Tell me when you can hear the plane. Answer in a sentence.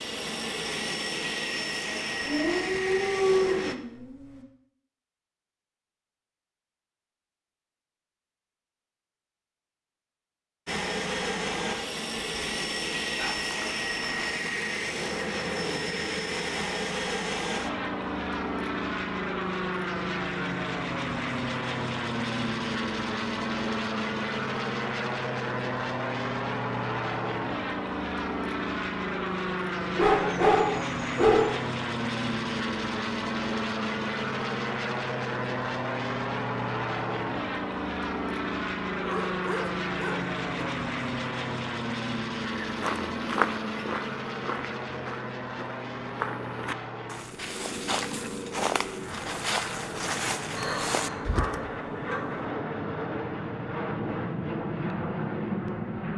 You can hear the plane from 0.0 to 3.8 s and from 10.7 to 56.1 s.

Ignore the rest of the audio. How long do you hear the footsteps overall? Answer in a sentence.
The footsteps can be heard for 9 seconds in total.